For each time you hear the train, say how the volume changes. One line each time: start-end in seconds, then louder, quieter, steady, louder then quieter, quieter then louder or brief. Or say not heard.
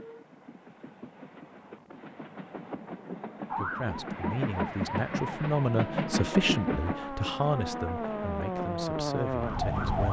0.0-10.0 louder then quieter.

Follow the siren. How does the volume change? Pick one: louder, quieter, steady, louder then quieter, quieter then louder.
louder.